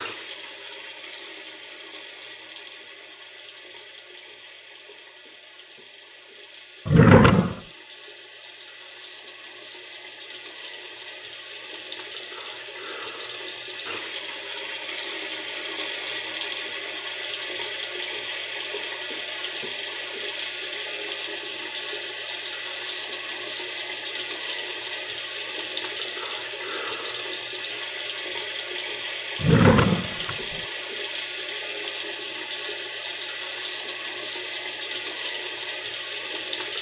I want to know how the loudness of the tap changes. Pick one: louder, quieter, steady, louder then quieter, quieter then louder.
louder.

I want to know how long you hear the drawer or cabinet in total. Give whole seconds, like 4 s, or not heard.
2 s.